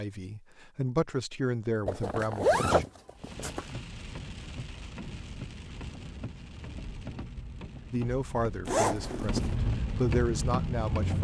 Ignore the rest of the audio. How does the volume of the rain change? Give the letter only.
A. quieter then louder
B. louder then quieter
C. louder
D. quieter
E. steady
C.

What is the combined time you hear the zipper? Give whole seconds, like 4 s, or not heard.
3 s.